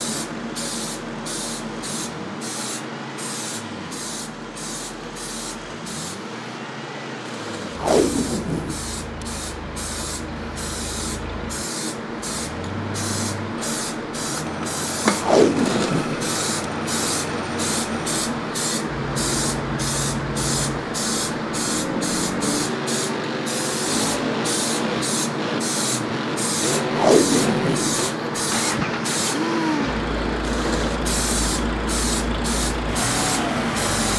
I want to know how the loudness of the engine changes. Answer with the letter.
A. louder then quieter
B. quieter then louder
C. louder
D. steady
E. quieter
C.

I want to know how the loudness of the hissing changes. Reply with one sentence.
The loudness of the hissing goes up.